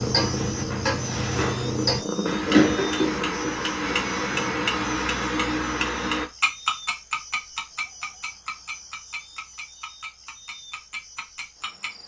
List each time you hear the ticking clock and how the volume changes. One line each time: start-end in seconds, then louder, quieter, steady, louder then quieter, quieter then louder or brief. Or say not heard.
0.0-12.0 quieter.